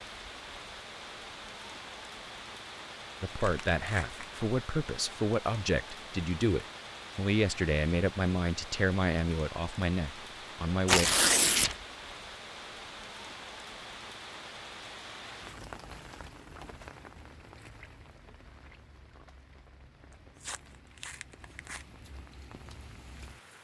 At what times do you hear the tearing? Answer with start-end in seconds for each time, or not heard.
3.4-4.3, 10.8-11.8, 20.4-21.9.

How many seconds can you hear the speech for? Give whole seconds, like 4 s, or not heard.
8 s.